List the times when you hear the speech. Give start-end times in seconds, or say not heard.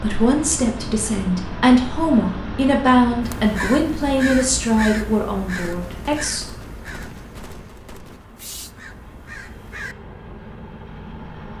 0.0-6.5.